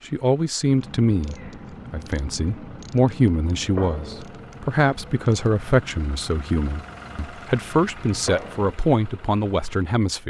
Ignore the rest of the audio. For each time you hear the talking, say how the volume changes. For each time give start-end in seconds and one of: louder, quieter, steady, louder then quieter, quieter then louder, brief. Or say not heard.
0.1-10.2 steady.